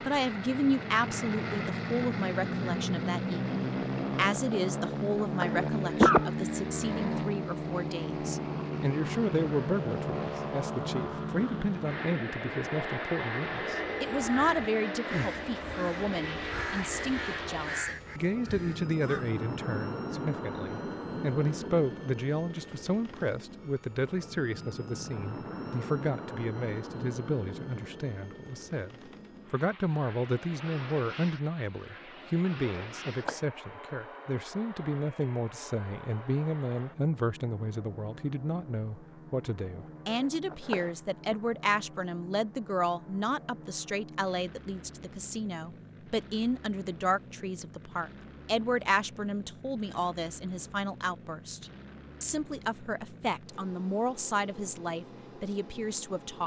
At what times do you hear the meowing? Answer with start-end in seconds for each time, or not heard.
not heard.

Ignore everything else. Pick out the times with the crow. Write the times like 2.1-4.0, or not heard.
13.7-19.4.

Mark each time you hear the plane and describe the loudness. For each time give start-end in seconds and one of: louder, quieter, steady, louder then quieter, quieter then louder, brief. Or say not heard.
0.0-56.4 quieter.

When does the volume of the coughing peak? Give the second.
6 s.